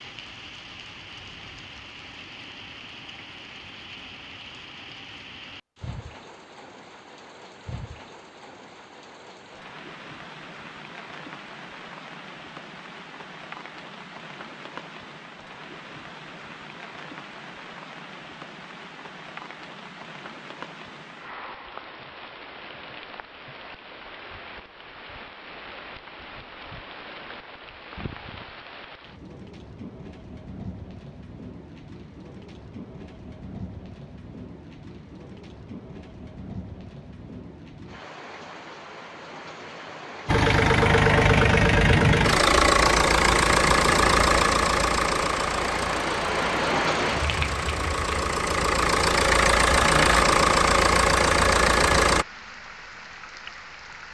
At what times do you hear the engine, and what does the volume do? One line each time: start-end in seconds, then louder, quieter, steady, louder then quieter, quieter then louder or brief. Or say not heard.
40.2-52.2 quieter then louder.